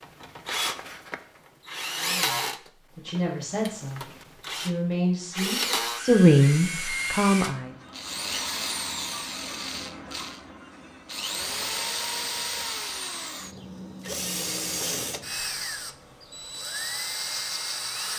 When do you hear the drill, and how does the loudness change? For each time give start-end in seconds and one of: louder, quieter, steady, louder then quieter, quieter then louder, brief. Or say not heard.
0.0-18.1 steady.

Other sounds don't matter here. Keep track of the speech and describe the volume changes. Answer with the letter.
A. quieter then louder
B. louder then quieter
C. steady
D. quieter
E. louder
E.